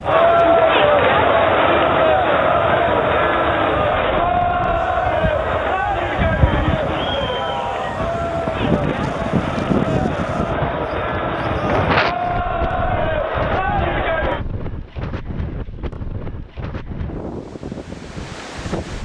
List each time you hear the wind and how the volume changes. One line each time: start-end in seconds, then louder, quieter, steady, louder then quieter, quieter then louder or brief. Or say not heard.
0.0-18.9 louder then quieter.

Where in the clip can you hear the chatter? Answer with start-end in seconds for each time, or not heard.
0.0-14.4.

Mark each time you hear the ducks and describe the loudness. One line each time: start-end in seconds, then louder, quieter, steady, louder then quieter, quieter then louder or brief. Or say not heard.
not heard.